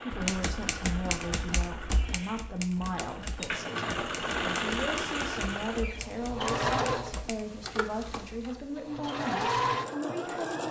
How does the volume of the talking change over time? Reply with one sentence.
The loudness of the talking stays about the same.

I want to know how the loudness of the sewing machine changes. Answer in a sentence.
The loudness of the sewing machine goes up.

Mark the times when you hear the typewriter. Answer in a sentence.
The typewriter can be heard from 0.1 to 8.7 s.